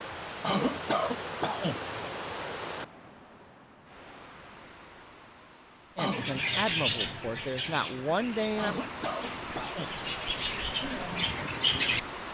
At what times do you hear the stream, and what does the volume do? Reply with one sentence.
You can hear the stream from 0.0 to 12.2 s, getting quieter then louder.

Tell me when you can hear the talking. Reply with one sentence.
You can hear the talking from 6.0 to 8.8 s.